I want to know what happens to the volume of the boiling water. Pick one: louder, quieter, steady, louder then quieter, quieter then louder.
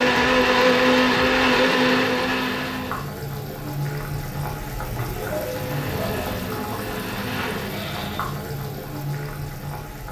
louder.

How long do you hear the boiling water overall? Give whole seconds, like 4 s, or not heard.
10 s.